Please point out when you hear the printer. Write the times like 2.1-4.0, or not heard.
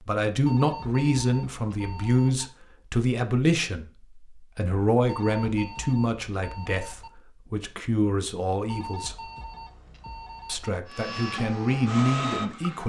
10.8-12.8.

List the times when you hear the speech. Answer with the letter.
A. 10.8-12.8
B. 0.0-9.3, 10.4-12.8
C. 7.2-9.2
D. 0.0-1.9
B.